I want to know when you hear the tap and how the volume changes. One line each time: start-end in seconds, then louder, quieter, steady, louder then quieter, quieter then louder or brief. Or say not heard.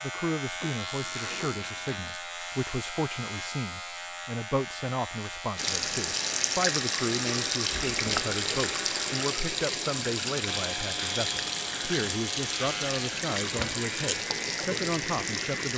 5.5-15.7 steady.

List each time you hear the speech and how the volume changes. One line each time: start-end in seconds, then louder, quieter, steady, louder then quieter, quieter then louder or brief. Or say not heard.
0.0-15.7 steady.